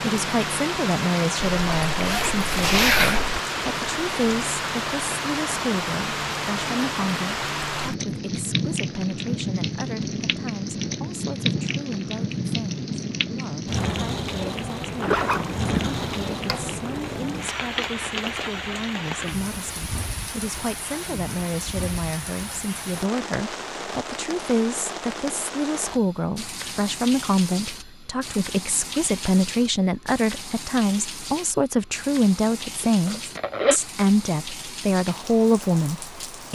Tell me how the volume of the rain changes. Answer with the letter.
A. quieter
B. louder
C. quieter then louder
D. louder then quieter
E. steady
A.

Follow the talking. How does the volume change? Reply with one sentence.
The volume of the talking goes down, then up.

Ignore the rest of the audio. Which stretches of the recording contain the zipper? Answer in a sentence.
You can hear the zipper from 1.6 to 3.4 s, from 15.0 to 16.8 s and from 32.8 to 33.8 s.